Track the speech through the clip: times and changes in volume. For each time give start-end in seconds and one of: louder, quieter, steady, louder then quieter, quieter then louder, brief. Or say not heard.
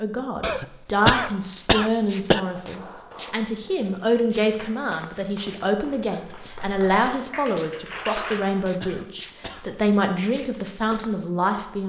0.0-11.8 steady.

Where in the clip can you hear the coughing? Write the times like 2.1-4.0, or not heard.
0.4-2.4, 8.2-9.7.